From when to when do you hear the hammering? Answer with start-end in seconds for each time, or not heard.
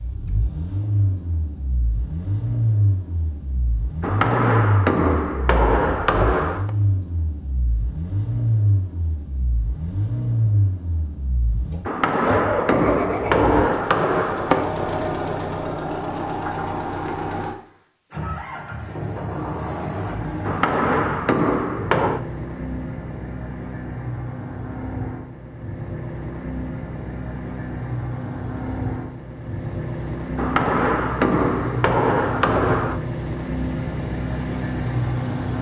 4.0-6.7, 11.8-14.7, 20.4-22.2, 30.4-33.0.